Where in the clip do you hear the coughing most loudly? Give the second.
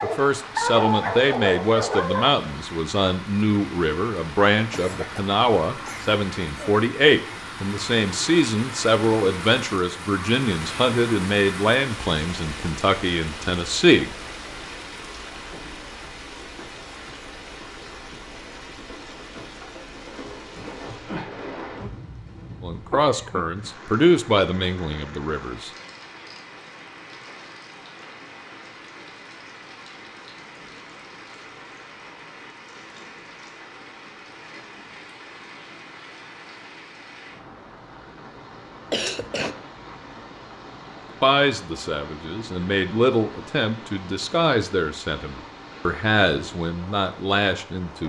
39 s.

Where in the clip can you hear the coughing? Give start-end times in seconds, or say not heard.
4.7-6.7, 21.6-22.1, 22.9-23.6, 38.9-39.7.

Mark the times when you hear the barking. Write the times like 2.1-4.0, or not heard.
0.0-2.3.